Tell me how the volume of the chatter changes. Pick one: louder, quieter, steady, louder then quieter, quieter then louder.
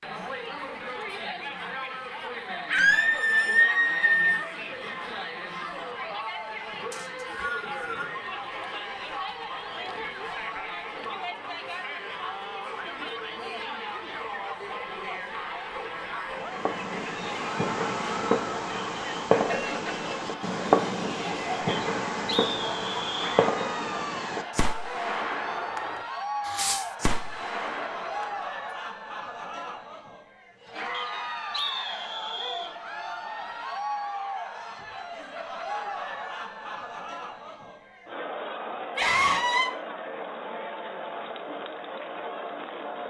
steady.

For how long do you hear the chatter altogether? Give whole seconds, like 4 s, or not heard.
43 s.